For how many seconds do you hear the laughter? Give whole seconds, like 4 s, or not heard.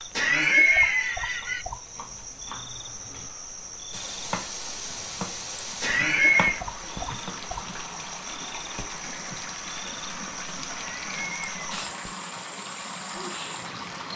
3 s.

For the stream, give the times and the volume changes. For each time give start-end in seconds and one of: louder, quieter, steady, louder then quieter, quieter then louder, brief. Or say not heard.
3.9-14.1 steady.